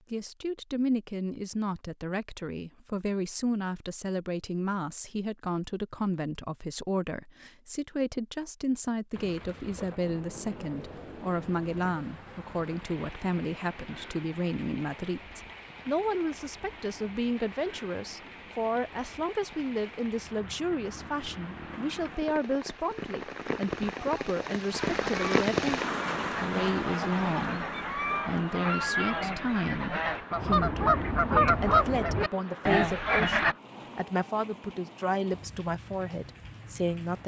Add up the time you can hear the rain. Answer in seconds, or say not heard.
28 s.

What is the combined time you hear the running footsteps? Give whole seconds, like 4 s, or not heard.
not heard.